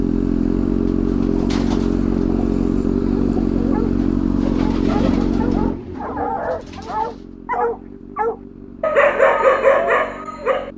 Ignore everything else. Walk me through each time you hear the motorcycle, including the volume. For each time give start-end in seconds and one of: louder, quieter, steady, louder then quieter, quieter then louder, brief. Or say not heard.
0.0-10.7 quieter.